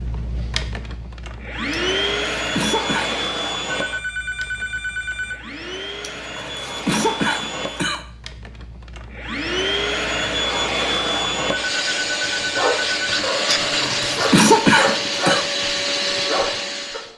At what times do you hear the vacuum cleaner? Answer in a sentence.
You can hear the vacuum cleaner from 0.0 to 17.1 s.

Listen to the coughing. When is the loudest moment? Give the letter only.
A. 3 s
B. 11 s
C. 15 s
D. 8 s
C.